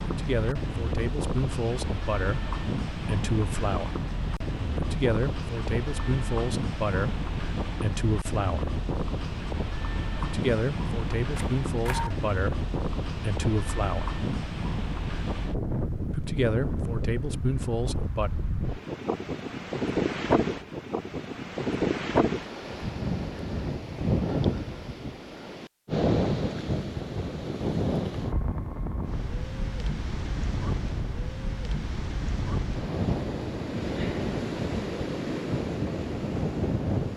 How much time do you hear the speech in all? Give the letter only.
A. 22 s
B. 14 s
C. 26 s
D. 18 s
B.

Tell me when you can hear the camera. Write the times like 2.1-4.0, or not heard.
11.3-12.2.